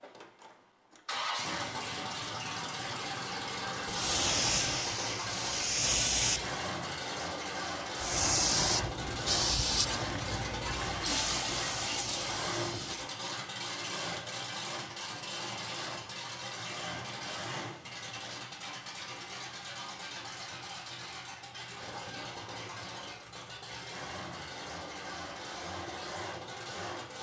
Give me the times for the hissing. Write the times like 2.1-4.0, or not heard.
3.9-6.4, 8.0-13.1.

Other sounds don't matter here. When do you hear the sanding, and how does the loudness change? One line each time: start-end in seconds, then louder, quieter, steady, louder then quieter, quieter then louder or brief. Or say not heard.
not heard.